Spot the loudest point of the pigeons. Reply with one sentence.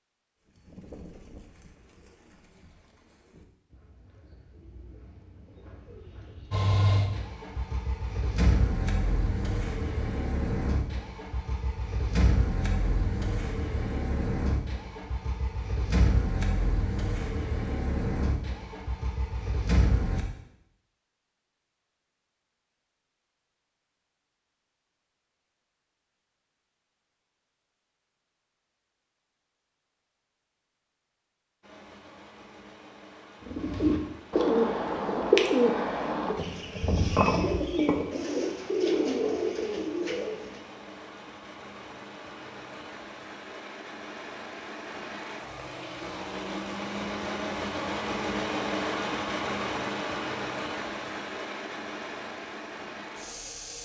The volume of the pigeons peaks at 35 seconds.